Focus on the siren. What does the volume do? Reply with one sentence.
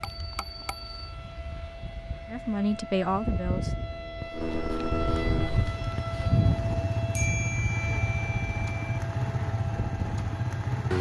The volume of the siren goes up, then down.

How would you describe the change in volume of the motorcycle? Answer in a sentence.
The volume of the motorcycle goes up.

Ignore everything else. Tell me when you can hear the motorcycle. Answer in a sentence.
You can hear the motorcycle from 0.0 to 10.9 s.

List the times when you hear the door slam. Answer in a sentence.
The door slam can't be heard in this clip.